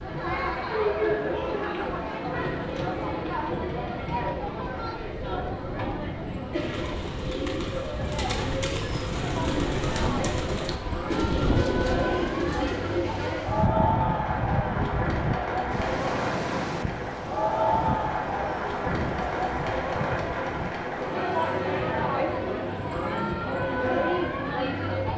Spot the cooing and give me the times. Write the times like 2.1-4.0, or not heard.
6.5-13.3.